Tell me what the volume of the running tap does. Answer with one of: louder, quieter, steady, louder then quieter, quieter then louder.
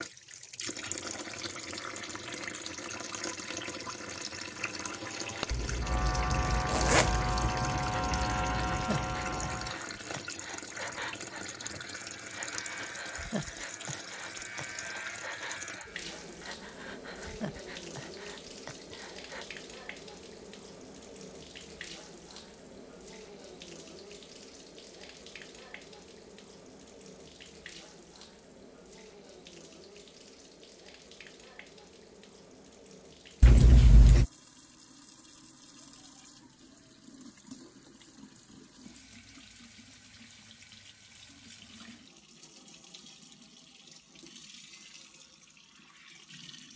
quieter.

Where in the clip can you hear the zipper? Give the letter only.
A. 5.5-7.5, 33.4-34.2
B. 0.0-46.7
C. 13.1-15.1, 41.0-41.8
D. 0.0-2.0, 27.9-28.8
A.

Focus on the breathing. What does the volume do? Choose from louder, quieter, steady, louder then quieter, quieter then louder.
steady.